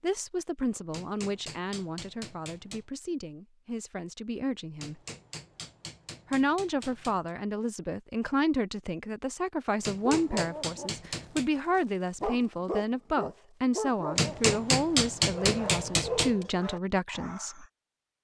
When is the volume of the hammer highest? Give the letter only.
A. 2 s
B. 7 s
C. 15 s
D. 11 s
C.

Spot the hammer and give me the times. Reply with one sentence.
You can hear the hammer from 0.9 to 2.9 s, from 4.8 to 7.3 s, from 9.8 to 11.5 s and from 14.2 to 16.4 s.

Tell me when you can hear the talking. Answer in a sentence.
You can hear the talking from 0.0 to 5.0 s and from 6.3 to 17.6 s.